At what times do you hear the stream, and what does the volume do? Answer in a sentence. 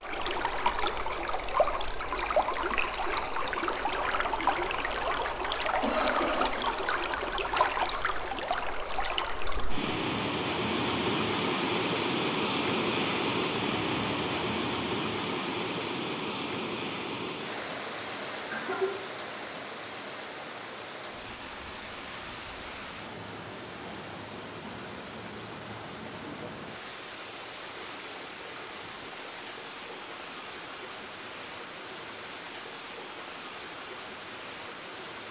You can hear the stream from 0.0 to 35.2 s, getting quieter.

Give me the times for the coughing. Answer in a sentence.
The coughing can be heard from 5.8 to 6.6 s and from 18.5 to 19.1 s.